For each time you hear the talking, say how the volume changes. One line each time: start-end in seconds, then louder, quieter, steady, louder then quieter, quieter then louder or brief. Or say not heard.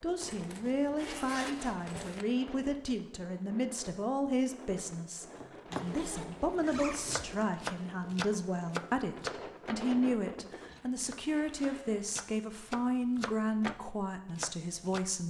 0.0-15.2 steady.